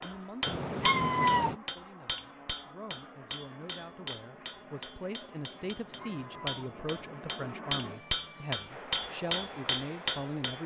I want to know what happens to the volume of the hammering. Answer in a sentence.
The volume of the hammering goes down, then up.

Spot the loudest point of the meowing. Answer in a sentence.
The volume of the meowing peaks at 1 second.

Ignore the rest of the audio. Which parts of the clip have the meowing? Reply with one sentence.
The meowing can be heard from 0.5 to 1.6 s and from 5.7 to 7.2 s.